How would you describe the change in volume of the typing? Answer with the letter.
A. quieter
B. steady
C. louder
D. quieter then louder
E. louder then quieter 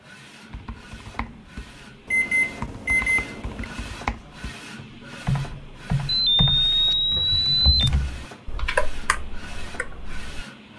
C.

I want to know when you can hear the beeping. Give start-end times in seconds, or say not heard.
2.0-3.6, 6.0-7.9.